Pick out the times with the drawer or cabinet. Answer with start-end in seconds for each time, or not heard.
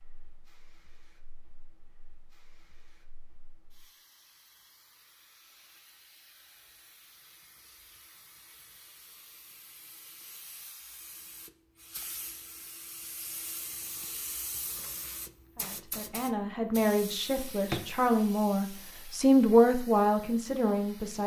17.4-17.9.